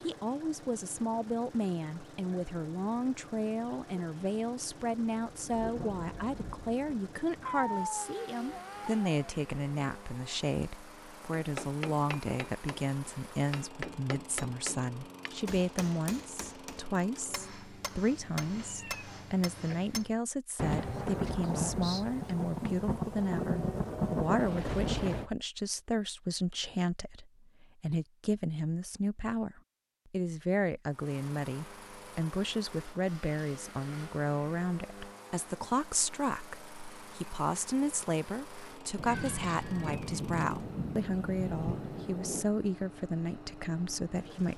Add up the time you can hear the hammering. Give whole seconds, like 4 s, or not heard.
9 s.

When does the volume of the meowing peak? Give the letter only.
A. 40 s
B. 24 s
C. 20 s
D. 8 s
D.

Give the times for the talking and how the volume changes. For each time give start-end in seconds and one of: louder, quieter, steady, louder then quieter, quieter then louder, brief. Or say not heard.
0.0-44.5 steady.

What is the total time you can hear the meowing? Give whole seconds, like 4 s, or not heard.
4 s.